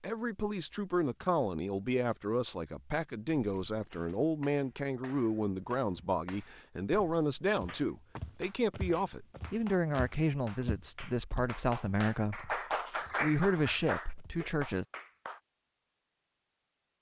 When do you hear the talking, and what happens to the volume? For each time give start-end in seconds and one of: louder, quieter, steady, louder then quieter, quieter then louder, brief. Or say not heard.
0.0-12.6 steady
13.2-14.8 brief.